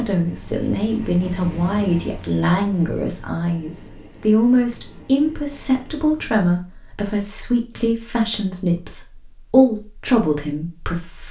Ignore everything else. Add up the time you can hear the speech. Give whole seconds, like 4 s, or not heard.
11 s.